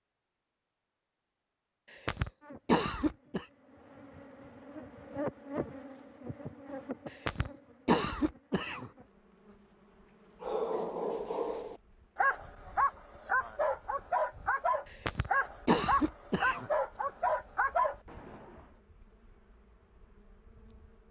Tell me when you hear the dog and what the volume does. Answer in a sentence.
You can hear the dog from 10.4 to 18.6 s, at a steady volume.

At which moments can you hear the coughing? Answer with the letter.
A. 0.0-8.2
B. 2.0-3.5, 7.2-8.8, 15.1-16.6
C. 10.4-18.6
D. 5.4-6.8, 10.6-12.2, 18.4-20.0
B.